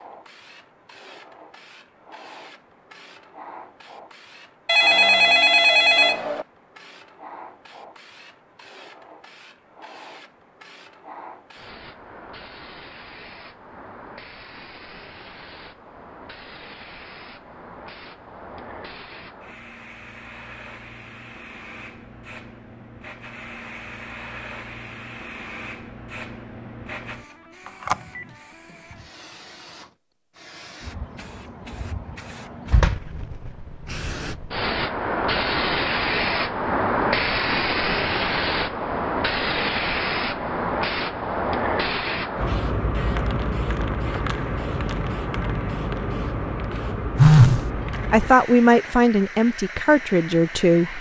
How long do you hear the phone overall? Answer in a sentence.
You can hear the phone for 3 seconds altogether.